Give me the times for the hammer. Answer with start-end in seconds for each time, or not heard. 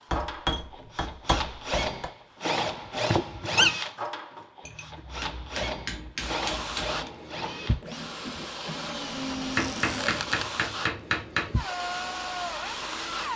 0.1-2.1, 4.6-7.0, 9.6-11.5.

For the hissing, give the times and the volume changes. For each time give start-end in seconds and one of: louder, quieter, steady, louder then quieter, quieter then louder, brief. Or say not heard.
6.2-13.3 steady.